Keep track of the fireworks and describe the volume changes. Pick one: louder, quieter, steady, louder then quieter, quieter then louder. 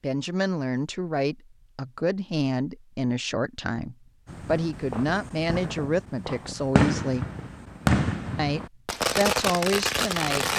louder.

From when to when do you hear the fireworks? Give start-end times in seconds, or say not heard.
4.2-10.5.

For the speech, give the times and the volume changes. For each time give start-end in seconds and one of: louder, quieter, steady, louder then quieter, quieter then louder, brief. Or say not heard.
0.0-7.2 steady
8.3-10.5 brief.